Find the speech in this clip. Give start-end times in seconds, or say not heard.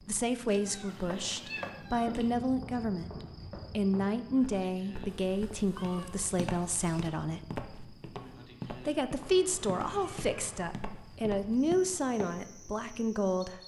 0.1-7.5, 8.8-13.6.